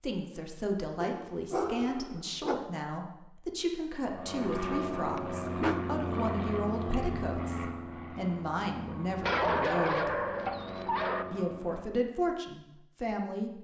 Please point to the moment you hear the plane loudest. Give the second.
6 s.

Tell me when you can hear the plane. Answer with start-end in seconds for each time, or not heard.
4.0-12.0.